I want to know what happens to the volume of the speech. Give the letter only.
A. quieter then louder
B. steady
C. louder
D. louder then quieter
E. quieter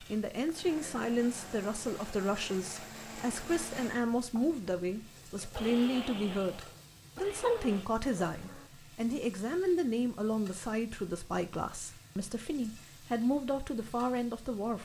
B.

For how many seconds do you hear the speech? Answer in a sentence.
The speech can be heard for 15 seconds in total.